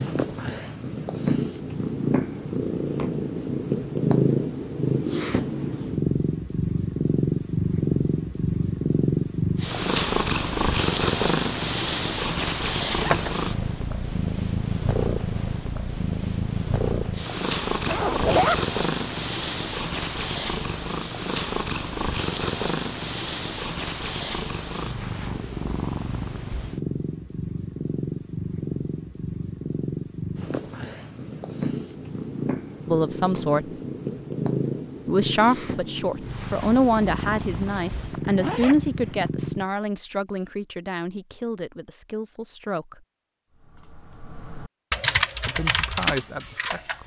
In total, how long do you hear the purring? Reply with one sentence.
The purring can be heard for 40 seconds in total.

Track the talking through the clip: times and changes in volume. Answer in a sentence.
The talking can be heard briefly from 32.9 to 33.7 s; from 35.0 to 43.0 s, getting quieter; and briefly from 45.5 to 47.0 s.